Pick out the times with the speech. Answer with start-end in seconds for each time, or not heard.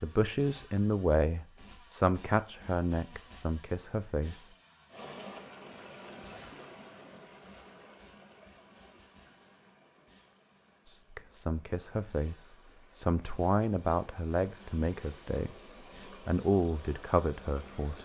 0.0-4.5, 10.8-15.6, 16.2-17.9.